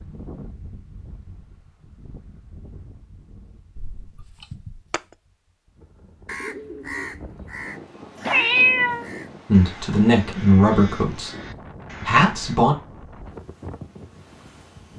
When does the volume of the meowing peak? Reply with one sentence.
The loudest moment of the meowing is at 9 seconds.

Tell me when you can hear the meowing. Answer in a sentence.
The meowing can be heard from 3.8 to 5.0 s and from 8.2 to 9.1 s.